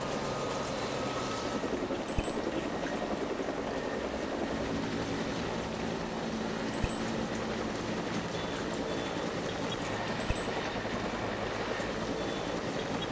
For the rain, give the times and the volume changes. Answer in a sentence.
The rain can be heard from 0.0 to 13.0 s, at a steady volume.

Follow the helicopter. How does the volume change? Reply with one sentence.
The loudness of the helicopter stays about the same.